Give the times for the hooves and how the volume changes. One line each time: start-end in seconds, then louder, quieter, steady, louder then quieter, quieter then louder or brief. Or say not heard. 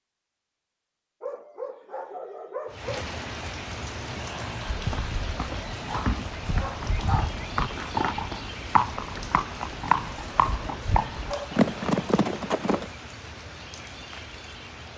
4.7-12.8 louder.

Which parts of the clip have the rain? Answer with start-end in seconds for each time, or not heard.
2.6-14.9.